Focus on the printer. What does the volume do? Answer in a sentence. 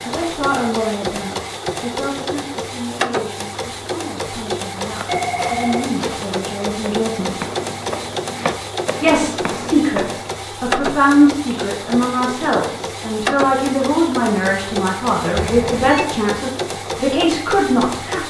The loudness of the printer stays about the same.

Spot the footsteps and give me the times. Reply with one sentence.
The footsteps can be heard from 4.8 to 10.4 s.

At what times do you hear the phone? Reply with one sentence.
The phone can be heard from 5.0 to 5.8 s and from 15.3 to 16.1 s.